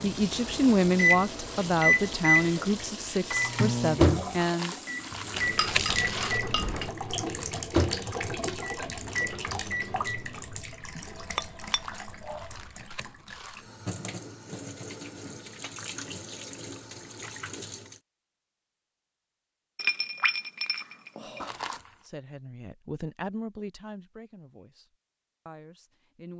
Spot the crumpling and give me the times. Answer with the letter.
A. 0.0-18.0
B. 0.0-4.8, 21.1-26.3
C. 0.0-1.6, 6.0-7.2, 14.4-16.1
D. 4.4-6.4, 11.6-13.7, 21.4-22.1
D.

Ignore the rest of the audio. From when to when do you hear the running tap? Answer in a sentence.
The running tap can be heard from 0.0 to 18.0 s.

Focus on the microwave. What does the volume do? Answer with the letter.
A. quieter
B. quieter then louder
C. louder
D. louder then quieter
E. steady
A.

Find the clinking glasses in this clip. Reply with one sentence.
You can hear the clinking glasses from 5.3 to 7.0 s, from 11.3 to 12.5 s and from 19.8 to 21.5 s.